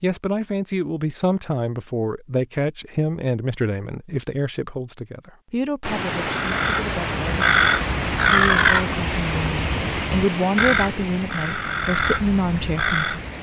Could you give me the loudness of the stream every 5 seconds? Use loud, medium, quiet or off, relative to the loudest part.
off, loud, medium.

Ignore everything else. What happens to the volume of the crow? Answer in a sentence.
The loudness of the crow goes down, then up.